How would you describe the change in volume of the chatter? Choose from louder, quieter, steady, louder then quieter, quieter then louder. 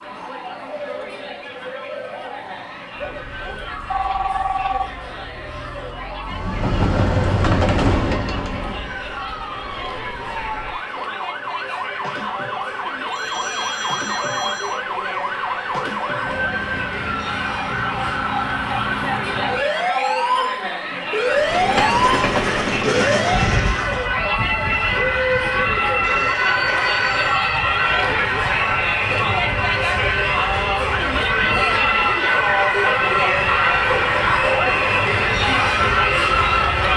louder.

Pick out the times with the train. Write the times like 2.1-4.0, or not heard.
6.2-9.0, 21.2-24.1.